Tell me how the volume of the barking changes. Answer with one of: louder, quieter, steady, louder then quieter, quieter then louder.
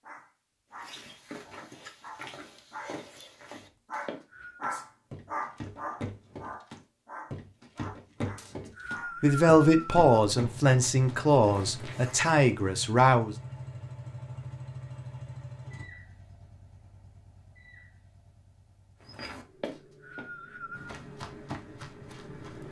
louder then quieter.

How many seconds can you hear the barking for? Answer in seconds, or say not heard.
9 s.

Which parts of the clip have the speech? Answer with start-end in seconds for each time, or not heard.
9.2-13.3.